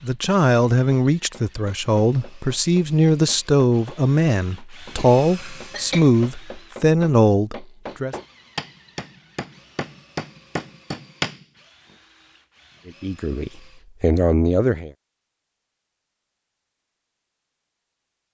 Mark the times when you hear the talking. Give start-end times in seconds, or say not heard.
0.0-8.2, 12.8-14.9.